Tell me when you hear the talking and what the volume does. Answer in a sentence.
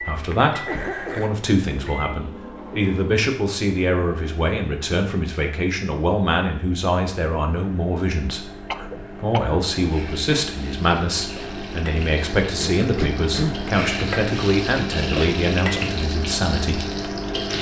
The talking can be heard from 0.0 to 16.9 s, at a steady volume.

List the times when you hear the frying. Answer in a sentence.
The frying can be heard from 9.8 to 17.5 s.